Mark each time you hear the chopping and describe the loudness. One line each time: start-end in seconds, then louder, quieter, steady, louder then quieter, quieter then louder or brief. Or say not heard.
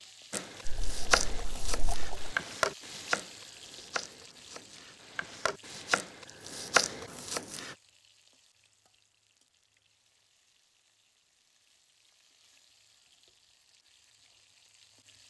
0.3-7.8 quieter then louder.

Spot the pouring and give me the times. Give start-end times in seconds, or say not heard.
0.7-2.4.